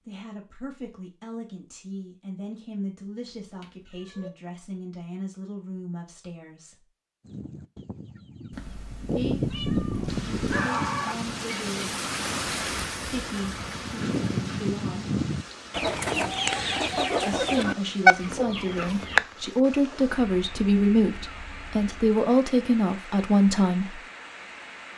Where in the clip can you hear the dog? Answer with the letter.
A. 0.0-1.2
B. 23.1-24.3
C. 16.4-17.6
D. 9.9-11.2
D.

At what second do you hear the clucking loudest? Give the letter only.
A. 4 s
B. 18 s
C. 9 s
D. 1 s
B.